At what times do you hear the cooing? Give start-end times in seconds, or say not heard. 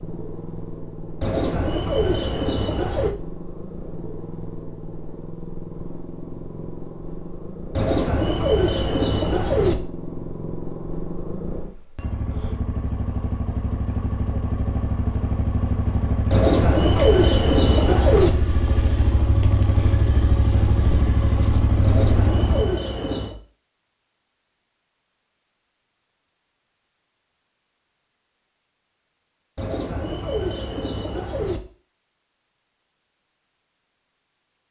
1.2-3.1, 7.8-9.8, 16.3-18.3, 21.8-23.4, 29.6-31.6.